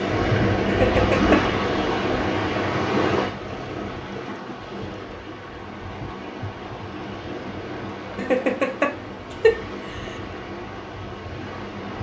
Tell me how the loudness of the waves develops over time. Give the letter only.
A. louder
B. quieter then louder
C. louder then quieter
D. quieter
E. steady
D.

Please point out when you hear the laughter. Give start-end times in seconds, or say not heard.
0.7-1.4, 8.2-10.2.